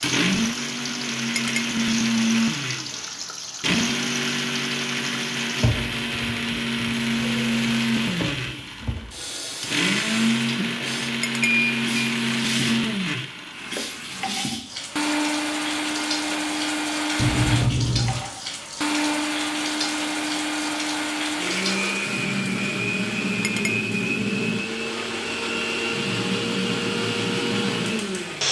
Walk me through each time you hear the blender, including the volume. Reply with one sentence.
You can hear the blender from 0.0 to 28.4 s, at a steady volume.